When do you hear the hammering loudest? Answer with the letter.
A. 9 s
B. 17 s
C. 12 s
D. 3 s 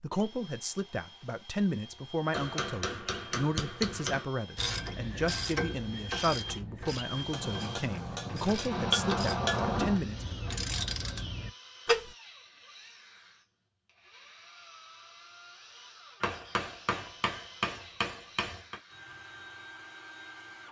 A.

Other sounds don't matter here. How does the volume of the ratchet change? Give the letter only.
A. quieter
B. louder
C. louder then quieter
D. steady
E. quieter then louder
E.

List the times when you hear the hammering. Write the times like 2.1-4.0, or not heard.
2.3-4.2, 7.3-10.0, 16.2-18.8.